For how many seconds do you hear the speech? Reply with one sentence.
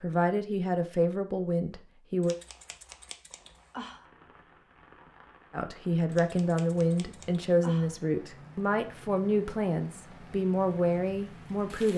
The speech can be heard for 9 seconds in total.